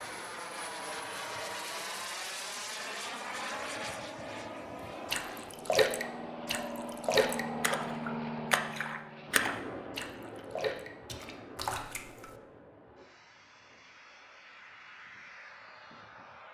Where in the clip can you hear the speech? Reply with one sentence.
You can't hear the speech here.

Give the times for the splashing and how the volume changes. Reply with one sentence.
The splashing can be heard from 5.1 to 12.3 s, getting quieter.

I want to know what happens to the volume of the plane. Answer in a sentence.
The volume of the plane goes down.